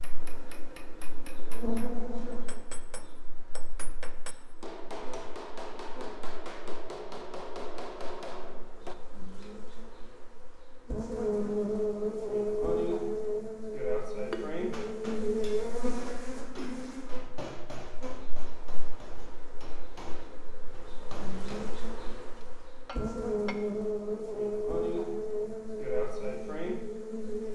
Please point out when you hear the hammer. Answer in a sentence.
You can hear the hammer from 0.0 to 8.9 s and from 14.3 to 23.6 s.